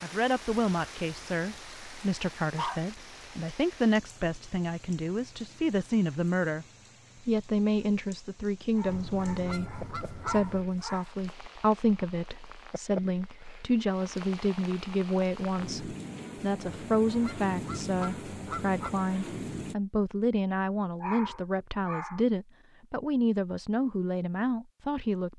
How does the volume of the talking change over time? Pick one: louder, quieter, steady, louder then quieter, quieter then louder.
steady.